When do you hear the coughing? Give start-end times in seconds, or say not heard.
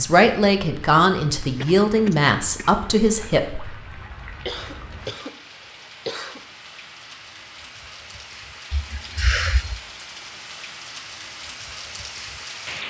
1.6-2.8, 4.5-6.5, 8.7-9.8.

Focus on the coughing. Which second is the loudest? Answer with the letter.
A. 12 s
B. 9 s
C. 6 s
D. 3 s
B.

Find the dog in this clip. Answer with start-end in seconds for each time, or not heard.
not heard.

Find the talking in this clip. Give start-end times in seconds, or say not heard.
0.0-3.8.